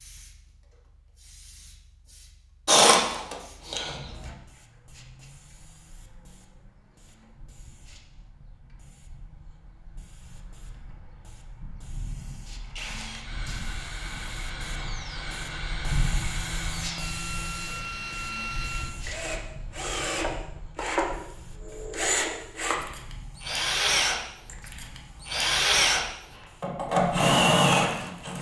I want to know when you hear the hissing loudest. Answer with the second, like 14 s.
16 s.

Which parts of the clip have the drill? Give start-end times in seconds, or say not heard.
2.6-4.3, 12.6-28.3.